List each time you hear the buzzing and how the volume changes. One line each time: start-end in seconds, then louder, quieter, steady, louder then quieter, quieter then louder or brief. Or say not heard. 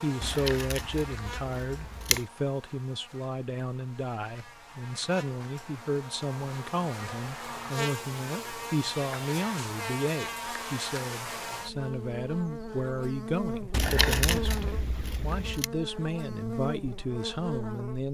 0.0-18.0 louder.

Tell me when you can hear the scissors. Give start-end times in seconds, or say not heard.
0.2-2.2, 13.7-15.7.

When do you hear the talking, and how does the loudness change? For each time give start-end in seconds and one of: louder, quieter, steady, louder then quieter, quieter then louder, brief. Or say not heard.
0.0-18.0 steady.